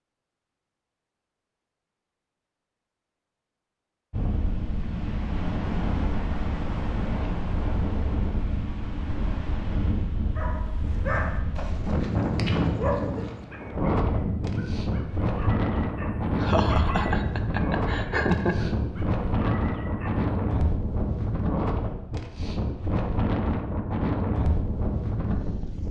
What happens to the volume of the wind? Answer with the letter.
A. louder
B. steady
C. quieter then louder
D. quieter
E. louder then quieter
B.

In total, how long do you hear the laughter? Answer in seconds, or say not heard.
2 s.